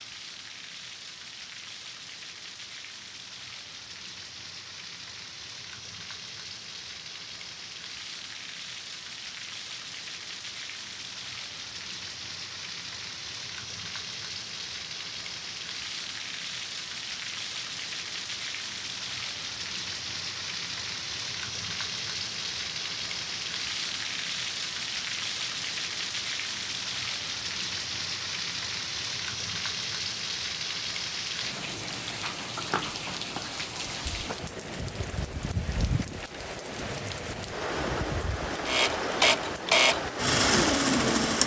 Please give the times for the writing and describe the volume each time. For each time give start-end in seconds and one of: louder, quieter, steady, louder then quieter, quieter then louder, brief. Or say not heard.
not heard.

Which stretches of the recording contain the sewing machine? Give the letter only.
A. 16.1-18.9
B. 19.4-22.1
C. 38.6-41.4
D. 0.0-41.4
C.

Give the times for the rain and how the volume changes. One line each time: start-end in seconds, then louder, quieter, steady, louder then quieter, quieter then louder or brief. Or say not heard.
0.0-41.4 louder.